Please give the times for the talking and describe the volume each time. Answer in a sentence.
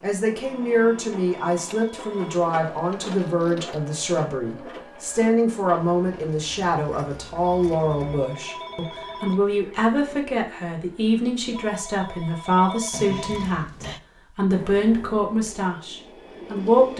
The talking can be heard from 0.0 to 16.9 s, at a steady volume.